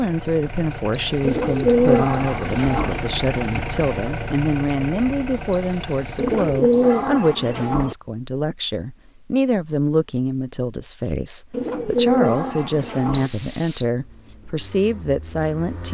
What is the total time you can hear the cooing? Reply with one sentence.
The cooing can be heard for 5 seconds in total.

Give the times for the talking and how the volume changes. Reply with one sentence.
The talking can be heard from 0.0 to 15.8 s, at a steady volume.